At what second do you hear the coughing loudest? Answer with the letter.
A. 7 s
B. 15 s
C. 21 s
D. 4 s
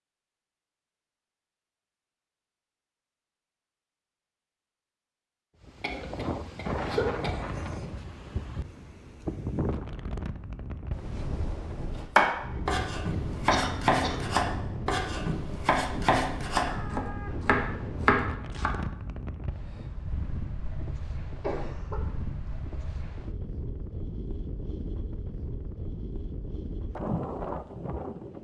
A.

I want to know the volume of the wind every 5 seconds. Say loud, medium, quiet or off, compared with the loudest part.
off, loud, loud, loud, medium, loud.